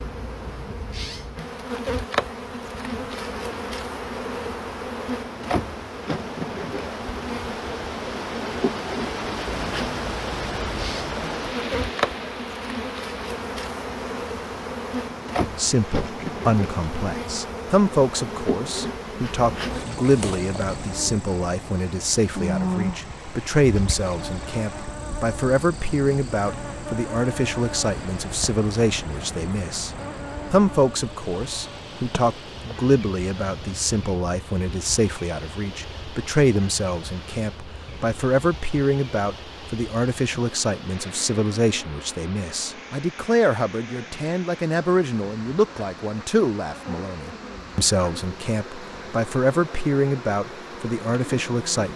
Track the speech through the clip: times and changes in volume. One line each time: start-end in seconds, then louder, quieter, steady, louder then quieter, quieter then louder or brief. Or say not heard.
15.6-29.9 steady
30.5-51.9 steady.